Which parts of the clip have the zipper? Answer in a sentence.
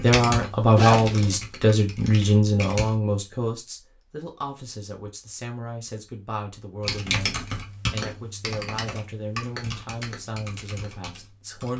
The zipper can be heard from 0.8 to 1.4 s.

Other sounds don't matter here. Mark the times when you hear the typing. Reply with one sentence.
You can hear the typing from 0.0 to 3.0 s and from 6.8 to 11.7 s.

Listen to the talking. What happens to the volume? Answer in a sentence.
The volume of the talking goes down.